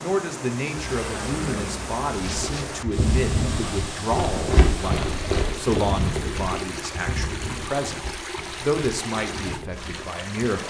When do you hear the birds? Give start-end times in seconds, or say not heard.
not heard.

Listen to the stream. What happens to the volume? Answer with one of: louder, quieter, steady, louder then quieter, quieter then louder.
steady.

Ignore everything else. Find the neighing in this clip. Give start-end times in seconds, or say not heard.
0.8-2.6.